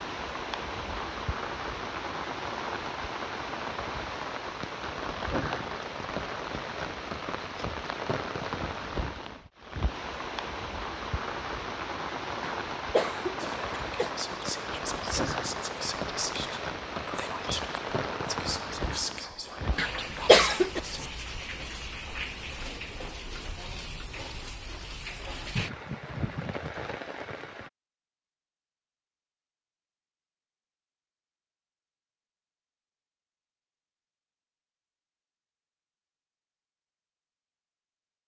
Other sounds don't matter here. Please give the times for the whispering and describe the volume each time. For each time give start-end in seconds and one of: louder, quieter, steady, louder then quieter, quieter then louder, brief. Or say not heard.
13.4-21.2 steady.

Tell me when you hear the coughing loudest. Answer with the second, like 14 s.
20 s.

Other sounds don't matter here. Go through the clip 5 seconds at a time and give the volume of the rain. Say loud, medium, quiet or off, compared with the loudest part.
loud, loud, loud, loud, medium, loud, off, off.